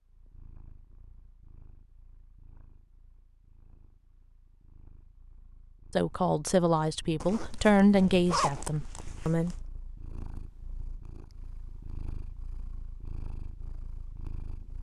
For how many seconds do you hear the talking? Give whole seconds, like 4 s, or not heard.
4 s.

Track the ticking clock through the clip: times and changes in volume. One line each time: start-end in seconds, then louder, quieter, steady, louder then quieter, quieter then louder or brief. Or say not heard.
not heard.